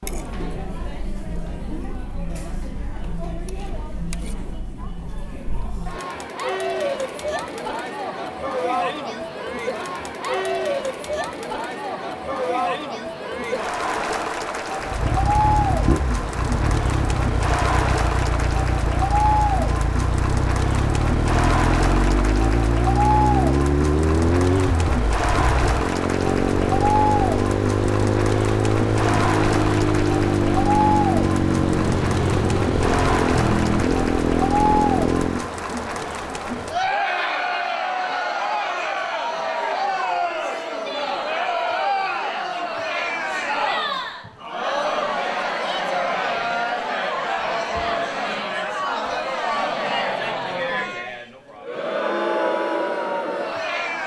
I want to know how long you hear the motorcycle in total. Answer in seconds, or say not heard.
21 s.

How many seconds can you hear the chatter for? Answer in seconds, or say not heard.
54 s.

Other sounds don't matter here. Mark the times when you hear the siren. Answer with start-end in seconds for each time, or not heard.
not heard.